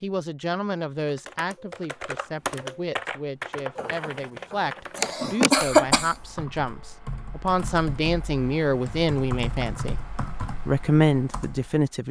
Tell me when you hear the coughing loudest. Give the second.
6 s.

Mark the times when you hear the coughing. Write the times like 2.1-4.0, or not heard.
3.8-6.2.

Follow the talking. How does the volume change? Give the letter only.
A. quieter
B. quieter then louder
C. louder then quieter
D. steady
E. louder
E.